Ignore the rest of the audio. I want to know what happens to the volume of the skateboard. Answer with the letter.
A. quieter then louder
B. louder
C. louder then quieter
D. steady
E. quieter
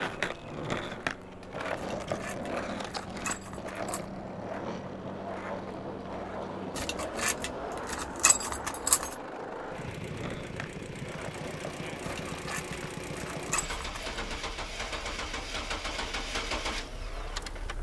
E.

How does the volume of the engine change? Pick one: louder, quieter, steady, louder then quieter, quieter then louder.
louder.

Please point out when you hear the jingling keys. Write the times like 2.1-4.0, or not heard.
1.8-4.0, 6.8-9.2, 12.0-14.2.